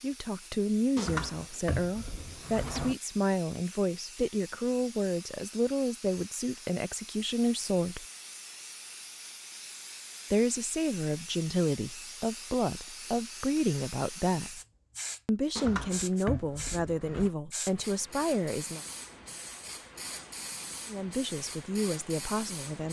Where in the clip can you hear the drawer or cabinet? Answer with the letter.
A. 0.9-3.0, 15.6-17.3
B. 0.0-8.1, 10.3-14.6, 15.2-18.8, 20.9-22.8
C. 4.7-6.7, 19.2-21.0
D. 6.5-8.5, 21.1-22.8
A.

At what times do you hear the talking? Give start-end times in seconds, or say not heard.
0.0-8.1, 10.3-14.6, 15.2-18.8, 20.9-22.8.